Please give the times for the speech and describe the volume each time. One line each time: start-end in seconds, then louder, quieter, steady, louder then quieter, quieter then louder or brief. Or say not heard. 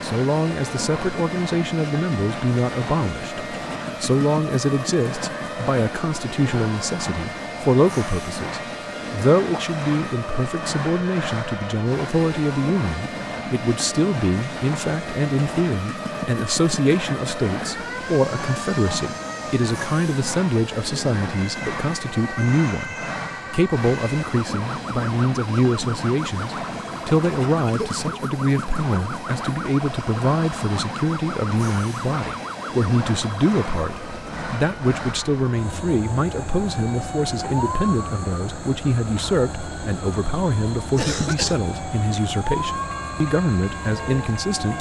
0.0-44.7 steady.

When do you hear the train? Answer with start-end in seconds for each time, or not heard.
0.0-44.7.